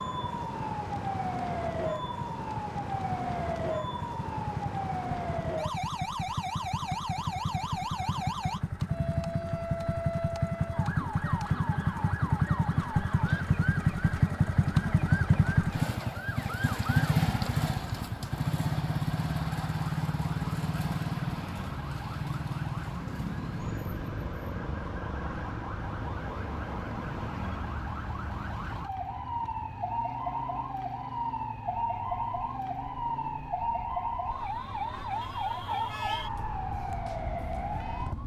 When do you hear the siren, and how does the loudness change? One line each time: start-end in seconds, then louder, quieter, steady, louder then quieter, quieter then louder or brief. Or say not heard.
0.0-38.2 quieter then louder.